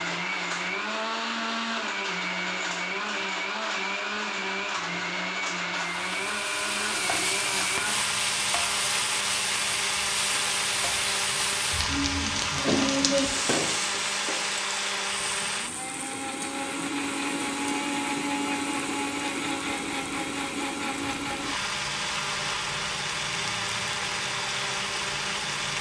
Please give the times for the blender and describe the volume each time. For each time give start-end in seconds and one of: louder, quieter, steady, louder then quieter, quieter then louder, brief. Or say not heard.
0.0-25.7 steady.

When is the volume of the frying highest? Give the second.
13 s.